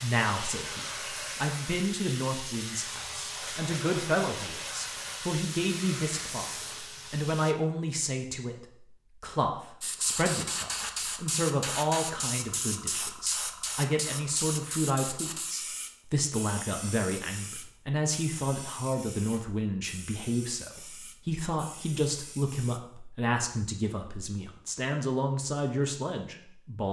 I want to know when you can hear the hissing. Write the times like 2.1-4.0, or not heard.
0.0-7.5, 9.8-22.8.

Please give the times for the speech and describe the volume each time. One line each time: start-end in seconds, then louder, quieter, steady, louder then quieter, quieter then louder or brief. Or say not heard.
0.0-26.8 steady.